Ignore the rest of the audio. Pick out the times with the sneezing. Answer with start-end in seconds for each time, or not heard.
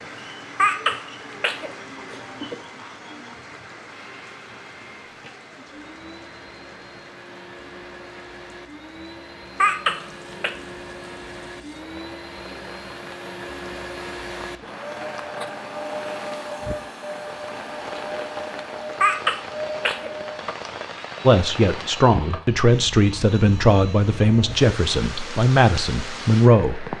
0.6-2.5, 9.6-10.5, 19.0-20.1.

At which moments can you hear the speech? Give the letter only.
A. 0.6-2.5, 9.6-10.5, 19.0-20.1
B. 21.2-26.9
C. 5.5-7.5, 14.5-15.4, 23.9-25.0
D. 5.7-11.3
B.